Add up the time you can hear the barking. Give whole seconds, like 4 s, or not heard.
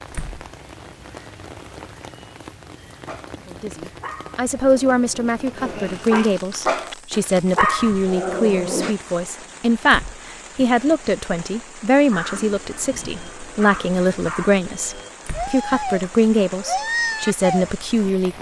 12 s.